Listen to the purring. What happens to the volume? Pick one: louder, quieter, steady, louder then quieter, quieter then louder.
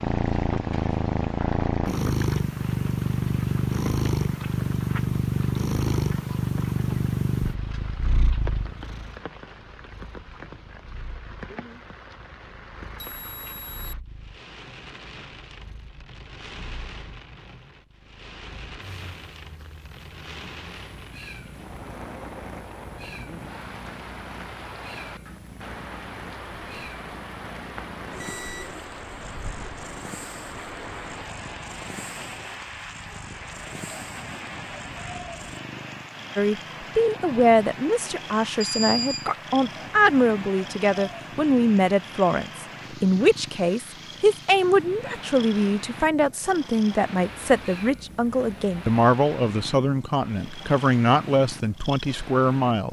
quieter then louder.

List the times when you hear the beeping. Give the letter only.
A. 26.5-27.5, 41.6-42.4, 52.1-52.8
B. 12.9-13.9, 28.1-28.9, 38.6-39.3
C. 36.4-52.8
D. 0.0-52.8
B.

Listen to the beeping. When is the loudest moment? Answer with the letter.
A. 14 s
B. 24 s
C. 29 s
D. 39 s
D.